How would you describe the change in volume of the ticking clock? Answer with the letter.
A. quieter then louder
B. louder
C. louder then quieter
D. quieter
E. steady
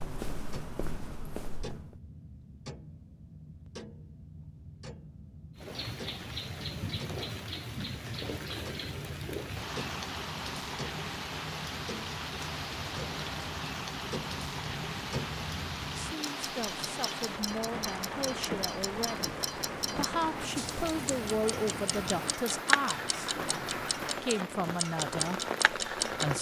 B.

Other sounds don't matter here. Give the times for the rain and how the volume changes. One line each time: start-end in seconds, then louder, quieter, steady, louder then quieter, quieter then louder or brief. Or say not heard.
5.5-26.3 steady.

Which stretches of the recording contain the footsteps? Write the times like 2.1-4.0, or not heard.
0.0-2.0.